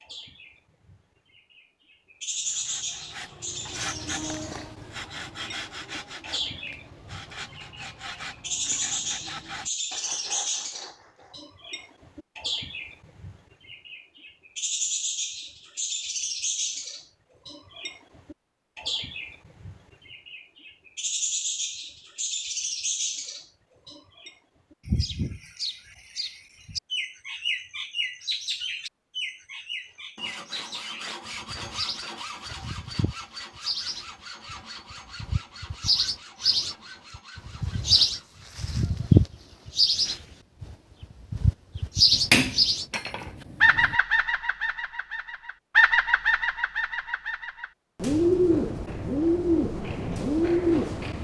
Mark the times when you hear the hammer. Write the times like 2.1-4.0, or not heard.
42.1-44.0.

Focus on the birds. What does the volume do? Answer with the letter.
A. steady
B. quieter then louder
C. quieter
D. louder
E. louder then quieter
D.